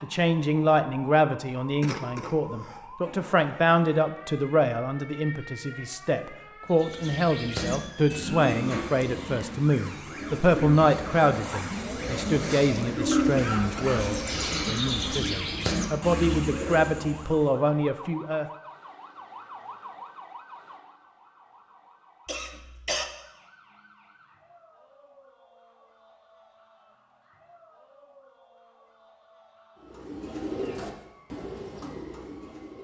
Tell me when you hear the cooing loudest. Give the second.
13 s.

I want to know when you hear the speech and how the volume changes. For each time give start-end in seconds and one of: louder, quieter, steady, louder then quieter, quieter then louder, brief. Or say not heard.
0.0-18.4 steady.